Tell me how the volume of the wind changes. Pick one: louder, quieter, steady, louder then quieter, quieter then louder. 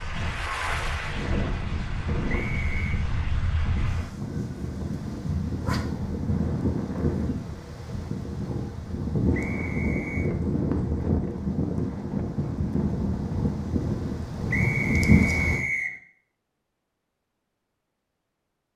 louder.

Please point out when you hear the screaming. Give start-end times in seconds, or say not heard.
not heard.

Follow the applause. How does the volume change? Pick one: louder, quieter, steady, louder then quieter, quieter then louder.
quieter.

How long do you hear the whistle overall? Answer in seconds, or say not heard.
3 s.